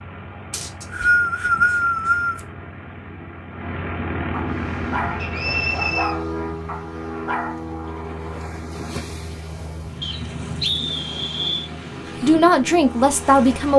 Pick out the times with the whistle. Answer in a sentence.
The whistle can be heard from 0.5 to 2.4 s, from 5.2 to 6.2 s and from 10.0 to 11.7 s.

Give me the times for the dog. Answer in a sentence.
You can hear the dog from 4.3 to 7.6 s.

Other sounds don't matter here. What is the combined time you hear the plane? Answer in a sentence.
You can hear the plane for 14 seconds altogether.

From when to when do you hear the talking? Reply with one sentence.
The talking can be heard from 12.2 to 13.7 s.